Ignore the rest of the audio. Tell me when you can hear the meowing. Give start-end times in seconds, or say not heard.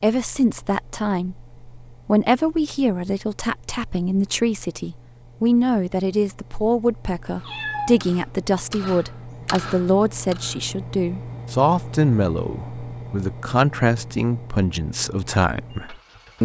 7.4-8.1.